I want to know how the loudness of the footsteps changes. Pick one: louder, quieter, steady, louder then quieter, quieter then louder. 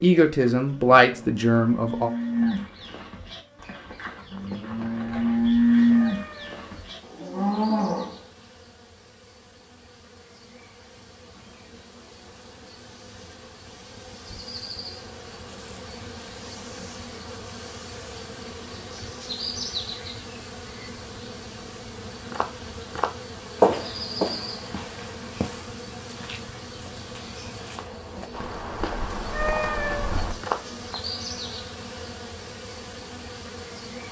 quieter then louder.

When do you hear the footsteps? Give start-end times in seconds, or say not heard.
22.3-30.9.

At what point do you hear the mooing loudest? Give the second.
6 s.